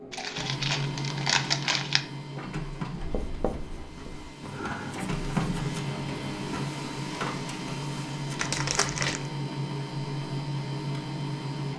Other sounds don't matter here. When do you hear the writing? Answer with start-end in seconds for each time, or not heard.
2.9-6.7.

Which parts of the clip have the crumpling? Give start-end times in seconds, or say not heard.
0.1-2.0, 8.3-9.3.